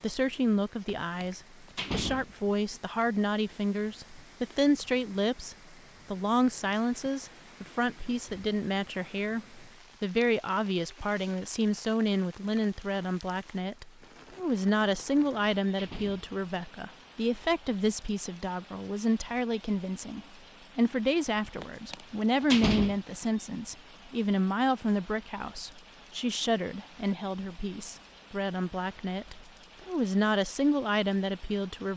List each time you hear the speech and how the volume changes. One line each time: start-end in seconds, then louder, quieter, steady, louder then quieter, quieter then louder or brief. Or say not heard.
0.0-31.9 steady.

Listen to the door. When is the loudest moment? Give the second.
23 s.